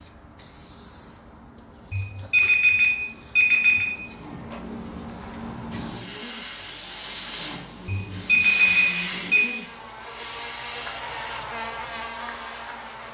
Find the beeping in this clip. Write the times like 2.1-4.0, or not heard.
1.9-3.9, 7.8-9.4.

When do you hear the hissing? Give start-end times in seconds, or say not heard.
0.0-12.8.